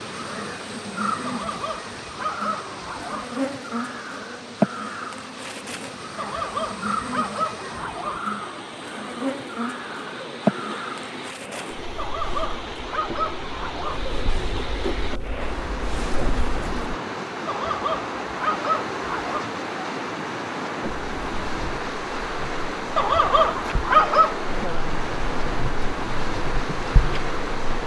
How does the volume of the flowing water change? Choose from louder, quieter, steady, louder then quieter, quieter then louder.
louder.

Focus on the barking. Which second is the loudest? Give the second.
24 s.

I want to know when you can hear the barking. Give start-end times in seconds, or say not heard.
1.2-3.2, 6.2-8.2, 11.9-14.0, 17.4-19.4, 22.9-24.4.